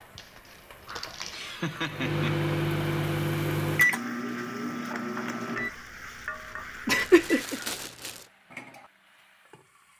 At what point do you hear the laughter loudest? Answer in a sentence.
The loudest moment of the laughter is at 7 seconds.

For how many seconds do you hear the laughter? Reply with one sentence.
You can hear the laughter for 2 seconds altogether.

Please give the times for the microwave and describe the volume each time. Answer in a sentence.
The microwave can be heard from 1.9 to 7.2 s, getting quieter.